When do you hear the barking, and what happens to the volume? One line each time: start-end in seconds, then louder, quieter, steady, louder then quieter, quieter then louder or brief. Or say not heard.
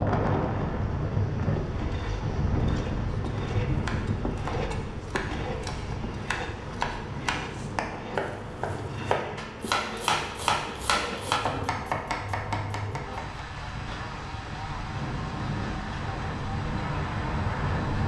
not heard.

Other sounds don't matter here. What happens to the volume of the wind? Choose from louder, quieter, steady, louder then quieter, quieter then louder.
quieter then louder.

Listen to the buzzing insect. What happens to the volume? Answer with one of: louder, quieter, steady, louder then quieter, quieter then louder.
steady.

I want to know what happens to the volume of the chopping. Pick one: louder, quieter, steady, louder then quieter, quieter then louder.
louder.